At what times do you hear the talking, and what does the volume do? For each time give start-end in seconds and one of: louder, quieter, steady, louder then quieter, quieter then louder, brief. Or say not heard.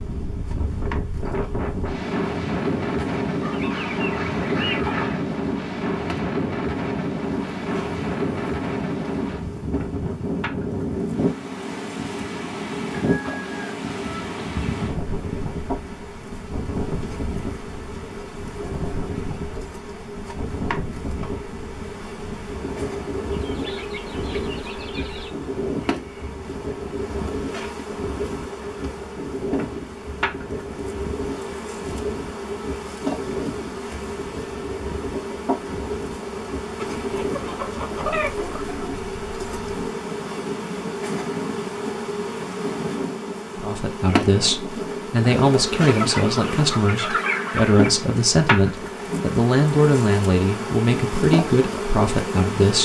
43.5-52.8 steady.